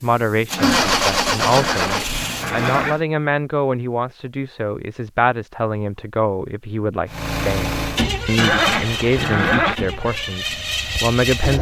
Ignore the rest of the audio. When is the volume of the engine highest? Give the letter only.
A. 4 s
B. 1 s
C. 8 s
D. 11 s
B.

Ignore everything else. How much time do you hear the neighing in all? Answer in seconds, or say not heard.
4 s.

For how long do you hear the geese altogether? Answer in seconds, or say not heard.
not heard.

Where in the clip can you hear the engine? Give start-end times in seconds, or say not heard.
0.0-3.0, 7.0-11.5.